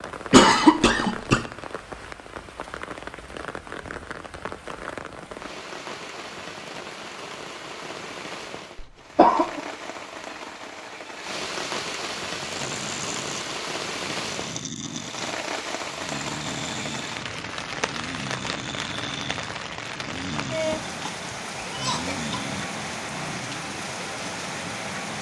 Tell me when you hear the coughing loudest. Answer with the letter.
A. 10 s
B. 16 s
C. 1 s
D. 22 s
C.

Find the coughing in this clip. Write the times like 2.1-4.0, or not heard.
0.3-1.4, 8.8-9.6, 20.6-22.4.